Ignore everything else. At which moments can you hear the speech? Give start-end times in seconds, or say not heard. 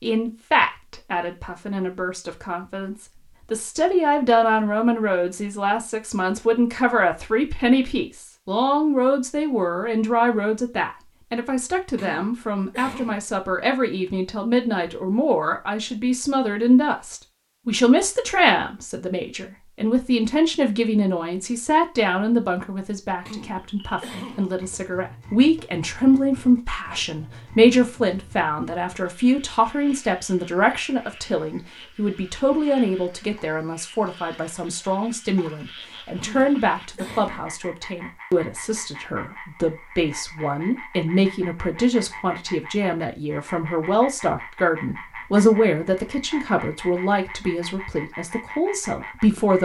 0.0-49.6.